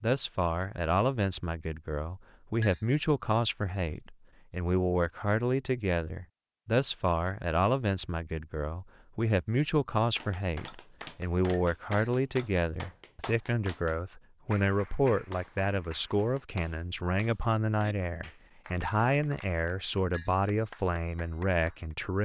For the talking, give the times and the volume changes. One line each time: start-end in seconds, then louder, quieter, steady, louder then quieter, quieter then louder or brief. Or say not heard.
0.0-22.1 steady.